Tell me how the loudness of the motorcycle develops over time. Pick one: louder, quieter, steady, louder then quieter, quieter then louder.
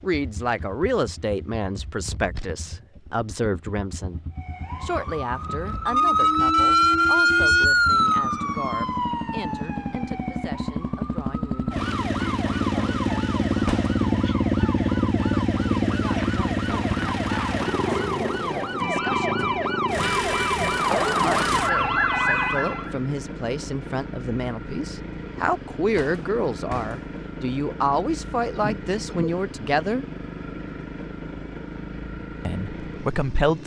louder then quieter.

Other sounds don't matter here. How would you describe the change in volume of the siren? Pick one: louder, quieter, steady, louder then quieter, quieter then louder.
quieter then louder.